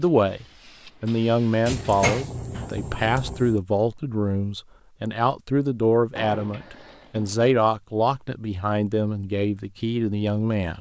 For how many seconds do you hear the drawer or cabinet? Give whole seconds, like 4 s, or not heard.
3 s.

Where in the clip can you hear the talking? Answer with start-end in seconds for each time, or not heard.
0.0-10.7.